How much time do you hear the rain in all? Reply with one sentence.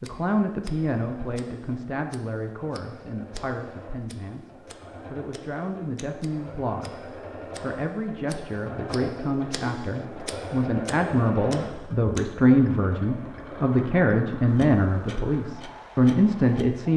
You can't hear the rain here.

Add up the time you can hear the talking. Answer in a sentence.
The talking can be heard for 17 seconds in total.